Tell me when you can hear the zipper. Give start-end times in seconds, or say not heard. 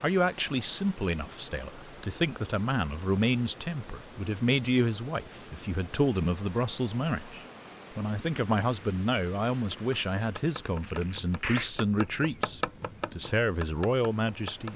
10.8-11.7.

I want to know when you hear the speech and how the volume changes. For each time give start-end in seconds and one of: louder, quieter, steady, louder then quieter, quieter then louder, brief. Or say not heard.
0.0-14.7 steady.